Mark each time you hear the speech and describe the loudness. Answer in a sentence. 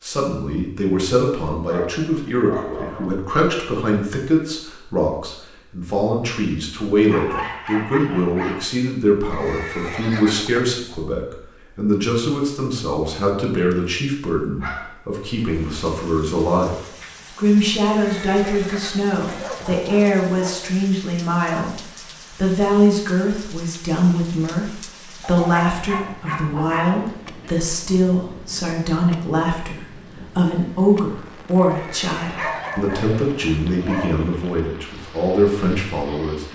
You can hear the speech from 0.0 to 16.8 s, at a steady volume; and from 17.4 to 36.5 s, at a steady volume.